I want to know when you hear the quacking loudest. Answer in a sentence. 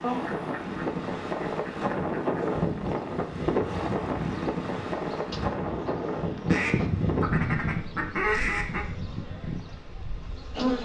The loudest moment of the quacking is at 8 seconds.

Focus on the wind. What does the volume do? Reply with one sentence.
The volume of the wind goes down.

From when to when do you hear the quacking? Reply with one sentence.
You can hear the quacking from 0.0 to 2.6 s and from 6.5 to 8.8 s.